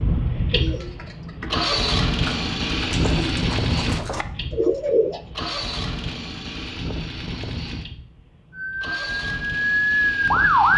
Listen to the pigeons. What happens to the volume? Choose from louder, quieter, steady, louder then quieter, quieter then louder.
louder.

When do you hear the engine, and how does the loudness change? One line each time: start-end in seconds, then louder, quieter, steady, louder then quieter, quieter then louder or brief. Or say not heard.
0.0-10.7 quieter.